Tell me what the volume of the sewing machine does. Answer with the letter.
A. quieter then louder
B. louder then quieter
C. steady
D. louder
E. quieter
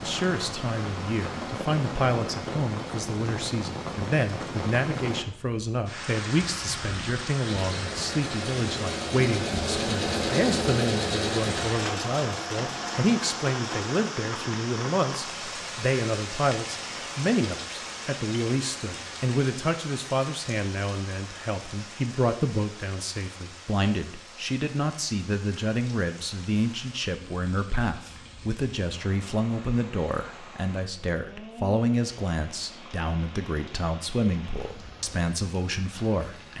B.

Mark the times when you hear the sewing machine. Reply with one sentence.
The sewing machine can be heard from 7.6 to 13.9 s.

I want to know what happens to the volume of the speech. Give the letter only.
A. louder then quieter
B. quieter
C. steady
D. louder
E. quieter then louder
C.